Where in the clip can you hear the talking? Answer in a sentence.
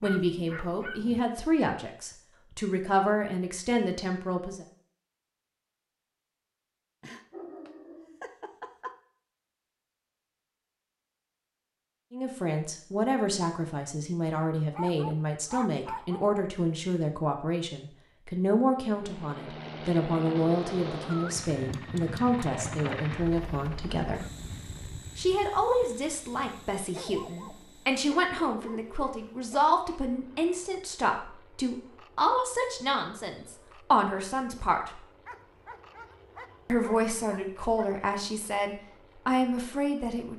You can hear the talking from 0.0 to 4.7 s, from 12.1 to 24.2 s, from 25.1 to 35.0 s and from 36.6 to 40.3 s.